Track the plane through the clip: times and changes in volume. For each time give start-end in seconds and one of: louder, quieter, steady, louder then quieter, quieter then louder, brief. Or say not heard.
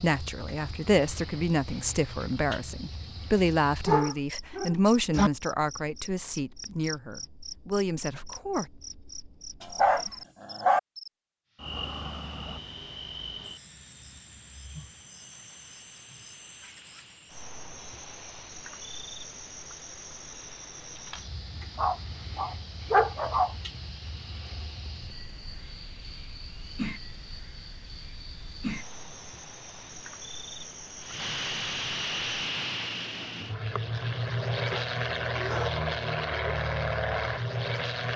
11.4-38.1 louder.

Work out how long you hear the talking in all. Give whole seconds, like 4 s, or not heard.
9 s.